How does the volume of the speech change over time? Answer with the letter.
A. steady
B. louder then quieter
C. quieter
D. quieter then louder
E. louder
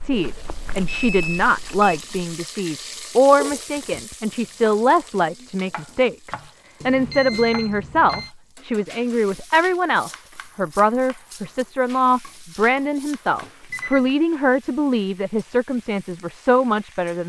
A.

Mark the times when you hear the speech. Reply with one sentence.
The speech can be heard from 0.0 to 17.2 s.